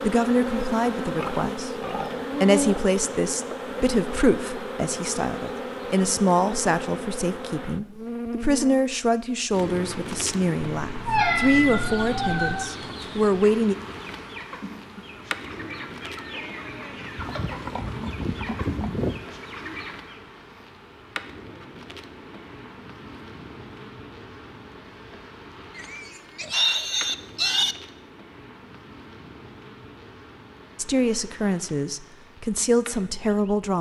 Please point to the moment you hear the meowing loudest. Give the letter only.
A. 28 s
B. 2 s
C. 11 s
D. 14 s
C.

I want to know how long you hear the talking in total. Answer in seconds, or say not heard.
16 s.